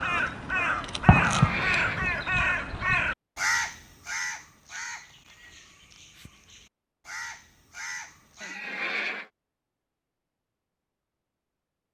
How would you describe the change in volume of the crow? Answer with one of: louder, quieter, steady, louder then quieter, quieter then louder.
quieter then louder.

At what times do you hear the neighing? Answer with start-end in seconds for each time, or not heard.
1.2-2.2, 8.4-9.3.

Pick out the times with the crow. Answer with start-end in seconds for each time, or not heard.
0.0-8.6.